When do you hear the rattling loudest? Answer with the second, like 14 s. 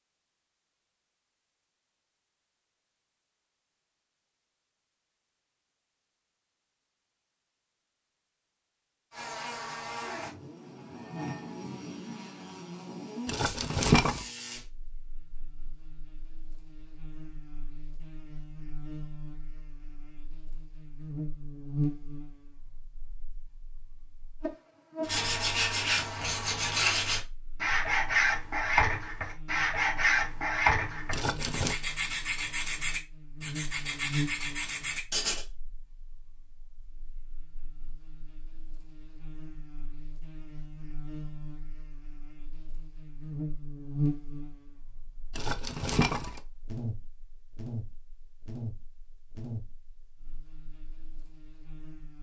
14 s.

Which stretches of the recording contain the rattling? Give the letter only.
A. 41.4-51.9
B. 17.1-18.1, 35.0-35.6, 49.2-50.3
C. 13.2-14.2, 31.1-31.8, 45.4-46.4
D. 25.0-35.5
C.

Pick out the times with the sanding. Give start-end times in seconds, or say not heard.
25.0-35.5.